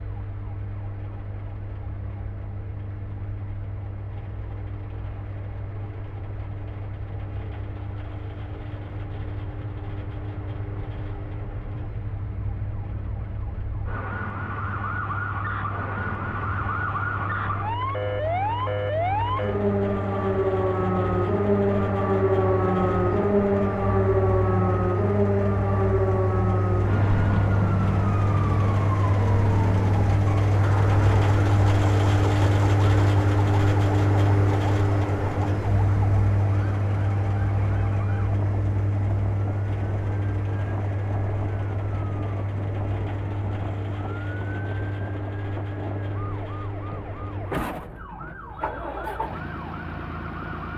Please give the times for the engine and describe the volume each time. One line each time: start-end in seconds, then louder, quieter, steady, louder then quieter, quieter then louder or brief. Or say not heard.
0.0-50.7 louder then quieter.